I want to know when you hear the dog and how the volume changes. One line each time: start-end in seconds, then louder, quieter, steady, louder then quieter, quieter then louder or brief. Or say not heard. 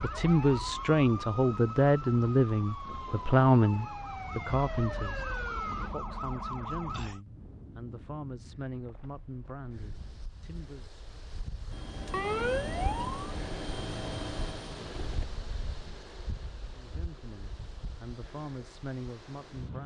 not heard.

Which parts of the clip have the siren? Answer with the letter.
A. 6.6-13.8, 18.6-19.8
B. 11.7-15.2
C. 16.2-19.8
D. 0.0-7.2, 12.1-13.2
D.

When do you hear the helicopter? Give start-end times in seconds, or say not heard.
11.7-15.2.